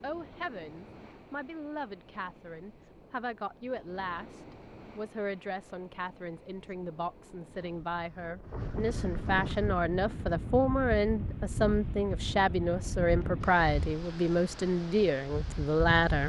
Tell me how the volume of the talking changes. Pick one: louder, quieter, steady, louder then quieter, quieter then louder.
louder.